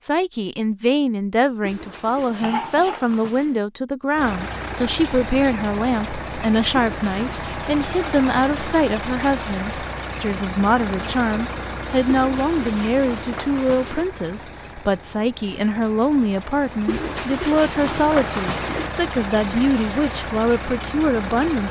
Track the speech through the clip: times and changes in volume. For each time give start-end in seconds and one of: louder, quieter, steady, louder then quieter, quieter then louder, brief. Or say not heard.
0.0-21.6 steady.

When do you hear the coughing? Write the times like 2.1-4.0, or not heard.
2.4-3.0.